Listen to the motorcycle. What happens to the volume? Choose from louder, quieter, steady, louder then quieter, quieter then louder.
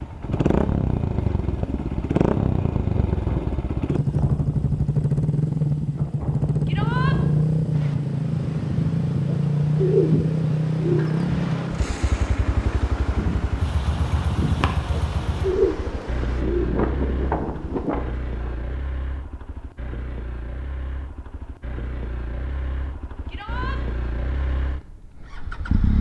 quieter.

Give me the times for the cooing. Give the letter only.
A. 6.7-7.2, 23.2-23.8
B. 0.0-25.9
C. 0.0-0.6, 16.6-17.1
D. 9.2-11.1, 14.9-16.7
D.